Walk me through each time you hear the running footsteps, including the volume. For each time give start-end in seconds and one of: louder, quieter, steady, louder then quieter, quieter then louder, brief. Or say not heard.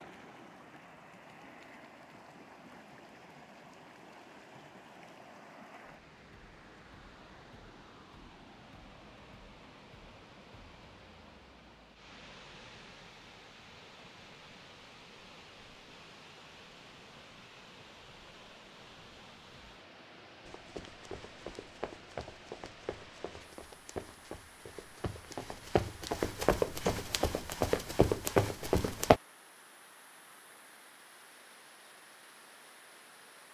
20.4-29.2 louder.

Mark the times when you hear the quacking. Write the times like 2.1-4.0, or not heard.
not heard.